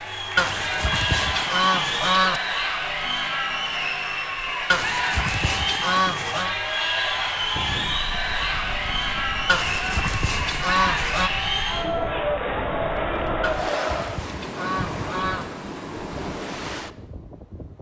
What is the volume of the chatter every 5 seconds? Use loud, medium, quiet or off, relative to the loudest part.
loud, loud, loud, off.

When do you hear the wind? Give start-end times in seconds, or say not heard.
7.2-17.7.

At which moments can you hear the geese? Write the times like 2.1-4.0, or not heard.
0.3-2.4, 4.7-6.5, 9.4-11.3, 13.4-15.4.